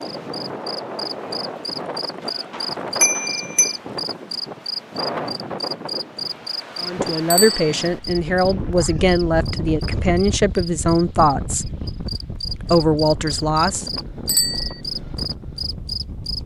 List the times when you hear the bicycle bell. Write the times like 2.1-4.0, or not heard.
3.0-3.8, 7.3-7.8, 14.2-14.8.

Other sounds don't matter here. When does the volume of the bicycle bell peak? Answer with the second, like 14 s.
3 s.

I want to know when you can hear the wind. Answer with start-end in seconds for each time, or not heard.
0.0-16.4.